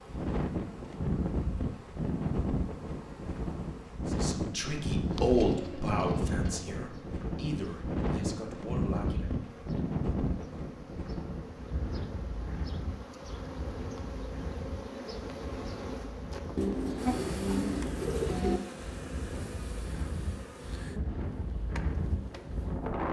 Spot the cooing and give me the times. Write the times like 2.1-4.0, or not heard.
5.0-6.7, 16.6-18.6.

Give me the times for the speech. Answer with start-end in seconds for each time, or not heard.
4.0-9.3.